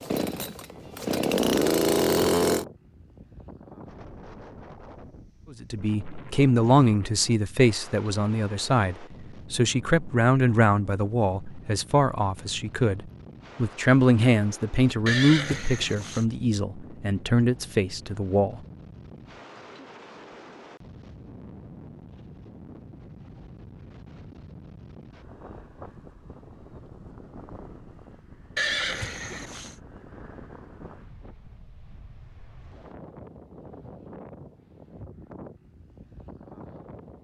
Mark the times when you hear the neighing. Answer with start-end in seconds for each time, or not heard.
15.1-16.2, 28.6-29.8.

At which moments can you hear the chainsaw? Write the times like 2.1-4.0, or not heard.
0.0-2.6.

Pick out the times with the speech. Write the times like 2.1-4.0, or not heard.
5.5-18.6.